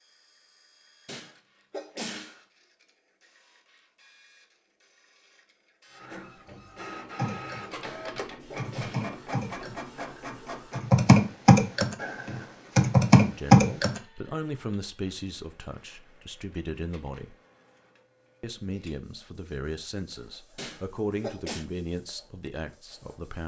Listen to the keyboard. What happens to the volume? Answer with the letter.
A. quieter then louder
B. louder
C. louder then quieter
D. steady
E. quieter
B.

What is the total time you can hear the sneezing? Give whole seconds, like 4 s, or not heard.
4 s.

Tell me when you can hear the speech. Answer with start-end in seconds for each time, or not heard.
13.2-17.4, 18.4-23.4.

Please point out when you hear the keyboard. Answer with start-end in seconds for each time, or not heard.
7.2-14.0.